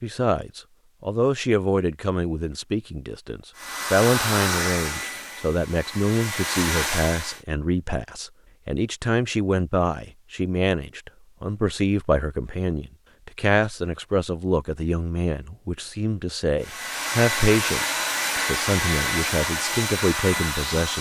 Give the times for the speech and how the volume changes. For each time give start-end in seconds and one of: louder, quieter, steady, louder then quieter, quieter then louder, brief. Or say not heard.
0.0-20.9 steady.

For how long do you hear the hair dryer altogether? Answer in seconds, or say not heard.
8 s.